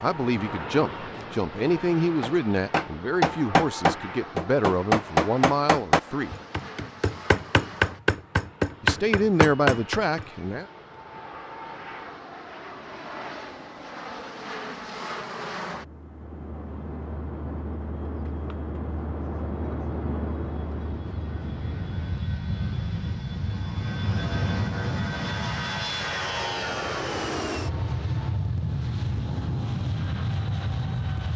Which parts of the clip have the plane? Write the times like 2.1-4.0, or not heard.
0.0-31.3.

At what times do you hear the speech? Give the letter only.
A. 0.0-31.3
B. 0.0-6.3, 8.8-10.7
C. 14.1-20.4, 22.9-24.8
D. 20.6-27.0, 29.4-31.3
B.